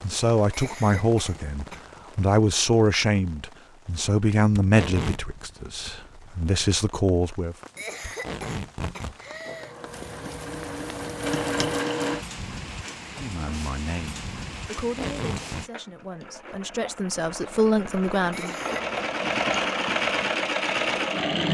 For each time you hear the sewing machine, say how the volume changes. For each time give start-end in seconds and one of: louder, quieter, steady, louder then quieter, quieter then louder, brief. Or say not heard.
9.4-12.2 brief
15.5-21.4 louder.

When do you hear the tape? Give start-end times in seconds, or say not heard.
4.5-5.2, 8.0-9.2, 14.8-15.7.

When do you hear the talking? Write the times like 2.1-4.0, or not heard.
0.0-7.5, 13.2-18.6.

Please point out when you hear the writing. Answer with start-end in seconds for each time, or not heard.
not heard.